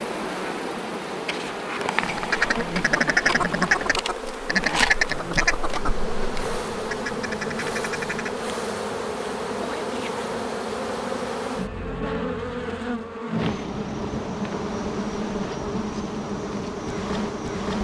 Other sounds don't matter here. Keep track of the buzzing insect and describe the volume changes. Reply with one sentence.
The volume of the buzzing insect stays about the same.